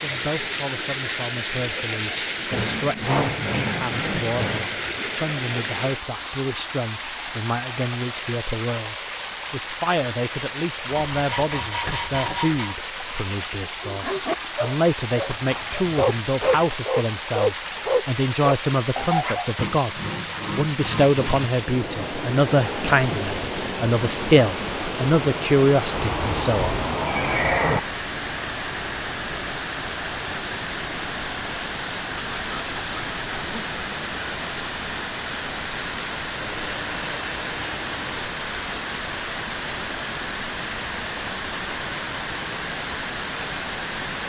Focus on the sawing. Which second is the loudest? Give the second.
3 s.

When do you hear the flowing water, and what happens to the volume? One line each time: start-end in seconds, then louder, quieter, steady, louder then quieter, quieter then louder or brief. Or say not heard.
0.0-44.2 steady.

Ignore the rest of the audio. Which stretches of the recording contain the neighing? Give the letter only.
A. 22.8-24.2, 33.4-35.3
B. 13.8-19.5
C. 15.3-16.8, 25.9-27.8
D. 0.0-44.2
C.